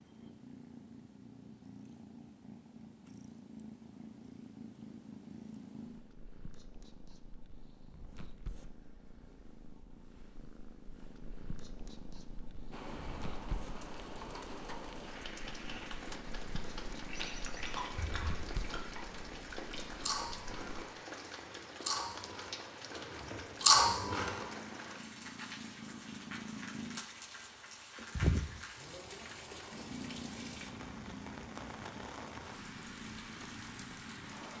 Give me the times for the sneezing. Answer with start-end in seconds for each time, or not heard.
not heard.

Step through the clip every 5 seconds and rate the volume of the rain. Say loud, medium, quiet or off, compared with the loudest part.
off, off, loud, loud, loud, loud, loud.